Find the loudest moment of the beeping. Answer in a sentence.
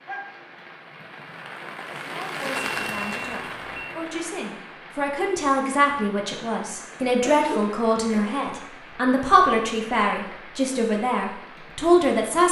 The loudest moment of the beeping is at 3 seconds.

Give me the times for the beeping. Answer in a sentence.
You can hear the beeping from 2.5 to 4.0 s.